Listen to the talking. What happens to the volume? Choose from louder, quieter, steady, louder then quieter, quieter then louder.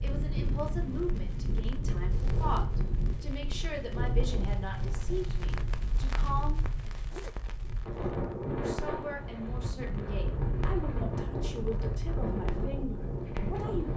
steady.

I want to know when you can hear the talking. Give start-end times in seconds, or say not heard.
0.0-7.0, 8.5-13.9.